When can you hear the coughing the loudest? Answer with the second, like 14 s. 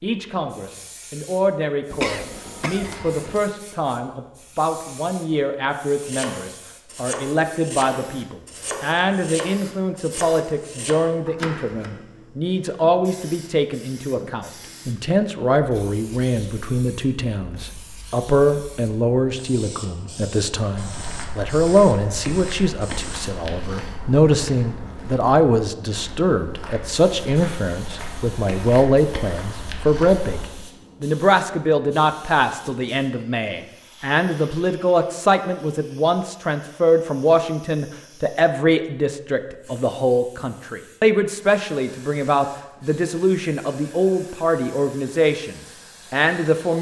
2 s.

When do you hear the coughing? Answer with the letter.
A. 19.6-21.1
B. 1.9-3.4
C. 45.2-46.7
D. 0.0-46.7
B.